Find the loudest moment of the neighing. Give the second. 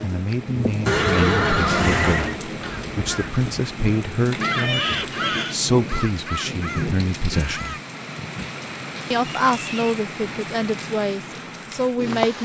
1 s.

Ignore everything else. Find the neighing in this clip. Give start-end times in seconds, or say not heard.
0.8-2.4, 4.5-5.6, 9.4-10.0.